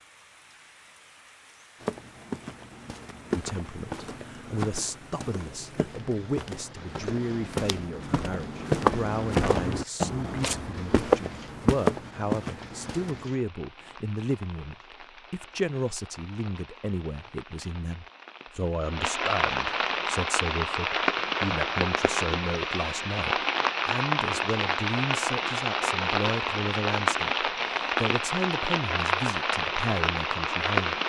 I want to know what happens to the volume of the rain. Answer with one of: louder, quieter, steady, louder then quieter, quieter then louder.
louder.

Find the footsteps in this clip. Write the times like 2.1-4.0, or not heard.
1.8-13.3.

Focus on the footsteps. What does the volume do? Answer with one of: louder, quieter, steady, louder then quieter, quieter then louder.
louder.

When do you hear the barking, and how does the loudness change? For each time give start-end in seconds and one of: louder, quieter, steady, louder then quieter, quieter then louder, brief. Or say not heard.
not heard.